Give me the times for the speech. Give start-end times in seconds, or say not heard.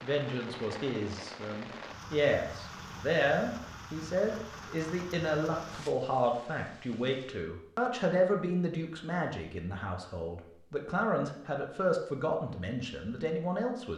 0.0-13.9.